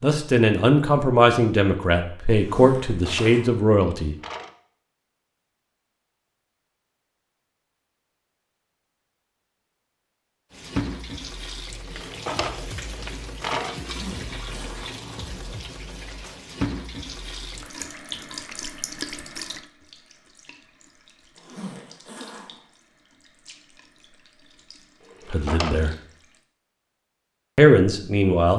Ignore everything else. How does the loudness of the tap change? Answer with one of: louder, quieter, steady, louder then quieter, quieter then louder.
quieter.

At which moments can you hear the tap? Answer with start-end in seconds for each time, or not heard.
10.5-26.4.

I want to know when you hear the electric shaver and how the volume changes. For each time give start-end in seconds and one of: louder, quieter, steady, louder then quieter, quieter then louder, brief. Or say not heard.
not heard.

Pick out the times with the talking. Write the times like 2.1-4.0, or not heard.
0.0-4.2, 25.3-25.9, 27.6-28.5.